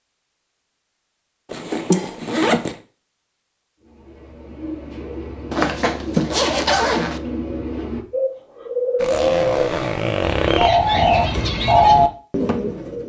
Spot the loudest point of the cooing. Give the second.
12 s.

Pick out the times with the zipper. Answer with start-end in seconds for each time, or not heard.
1.5-2.8, 5.5-7.2, 9.0-10.7.